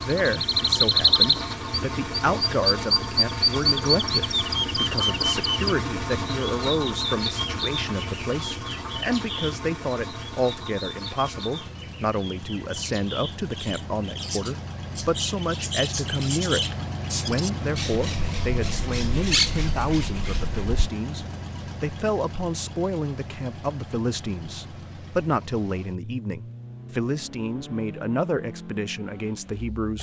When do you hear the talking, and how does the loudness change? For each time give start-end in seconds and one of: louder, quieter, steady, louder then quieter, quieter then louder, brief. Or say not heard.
0.0-29.9 steady.